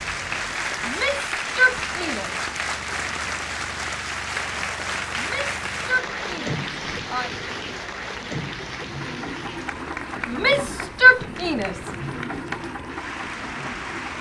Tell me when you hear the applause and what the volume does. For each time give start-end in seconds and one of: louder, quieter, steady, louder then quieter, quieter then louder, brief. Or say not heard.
0.0-14.1 quieter.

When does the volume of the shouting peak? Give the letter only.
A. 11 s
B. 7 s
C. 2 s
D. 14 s
A.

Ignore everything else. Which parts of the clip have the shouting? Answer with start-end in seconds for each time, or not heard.
0.8-2.5, 5.2-7.3, 10.2-11.9.